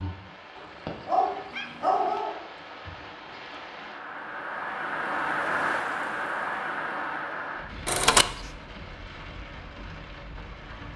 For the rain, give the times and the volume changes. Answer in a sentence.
The rain can be heard from 0.0 to 10.9 s, getting louder then quieter.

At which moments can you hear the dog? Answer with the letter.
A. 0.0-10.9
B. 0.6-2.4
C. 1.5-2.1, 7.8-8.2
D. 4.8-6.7
B.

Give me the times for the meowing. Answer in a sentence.
The meowing can be heard from 1.5 to 2.1 s and from 7.8 to 8.2 s.